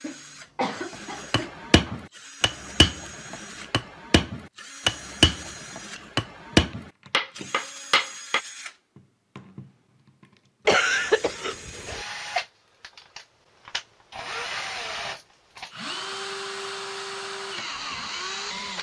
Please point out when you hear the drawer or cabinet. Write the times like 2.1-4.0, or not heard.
not heard.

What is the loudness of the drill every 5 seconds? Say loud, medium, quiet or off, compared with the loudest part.
medium, medium, loud, loud.